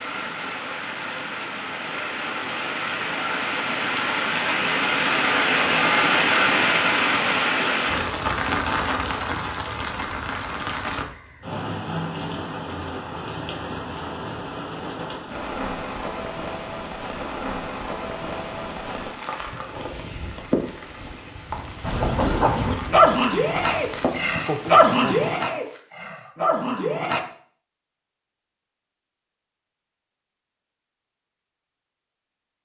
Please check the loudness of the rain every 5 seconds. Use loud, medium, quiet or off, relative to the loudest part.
medium, loud, medium, medium, medium, off, off.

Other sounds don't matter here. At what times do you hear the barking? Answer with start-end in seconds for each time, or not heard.
21.8-27.2.